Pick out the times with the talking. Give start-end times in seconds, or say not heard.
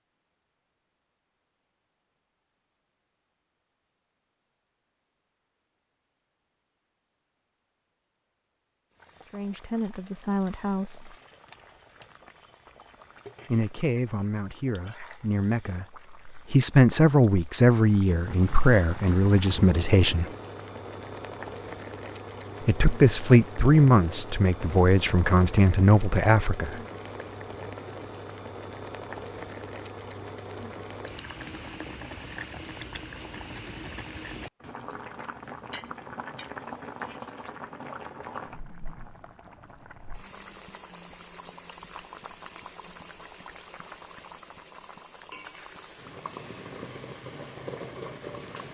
9.3-11.2, 13.4-20.2, 22.6-26.8.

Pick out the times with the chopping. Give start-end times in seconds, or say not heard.
not heard.